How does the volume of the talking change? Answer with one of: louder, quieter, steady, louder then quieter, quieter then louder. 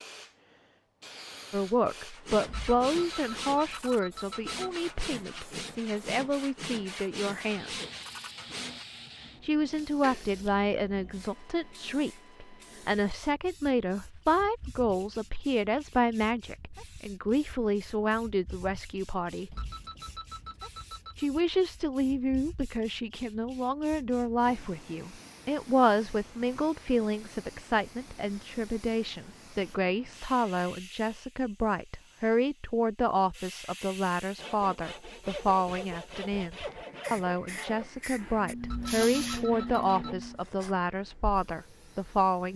steady.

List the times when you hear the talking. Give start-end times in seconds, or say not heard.
1.5-7.7, 9.4-19.6, 21.1-42.5.